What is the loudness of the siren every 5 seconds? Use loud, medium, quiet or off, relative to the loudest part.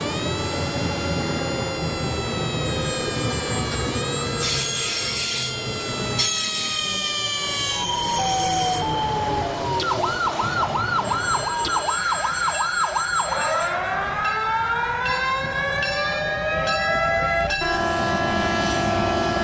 medium, loud, loud, loud.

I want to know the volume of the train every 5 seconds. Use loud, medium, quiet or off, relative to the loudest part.
loud, loud, medium, loud.